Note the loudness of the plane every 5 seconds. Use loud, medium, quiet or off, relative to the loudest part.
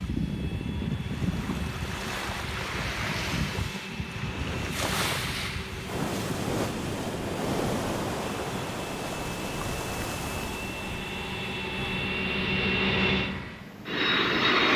quiet, quiet, loud.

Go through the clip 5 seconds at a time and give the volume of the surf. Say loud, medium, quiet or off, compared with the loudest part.
loud, loud, medium.